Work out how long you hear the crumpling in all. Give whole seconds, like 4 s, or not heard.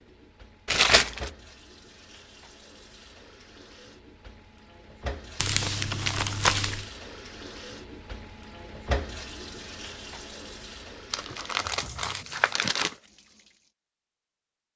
4 s.